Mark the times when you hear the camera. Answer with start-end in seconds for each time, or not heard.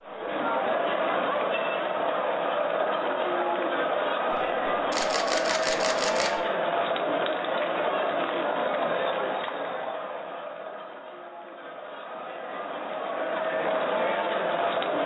4.3-6.4.